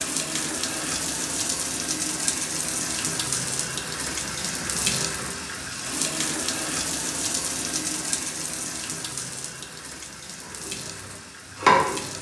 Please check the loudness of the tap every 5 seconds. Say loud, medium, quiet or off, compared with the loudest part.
loud, loud, medium.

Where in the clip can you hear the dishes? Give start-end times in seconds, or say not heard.
10.7-12.1.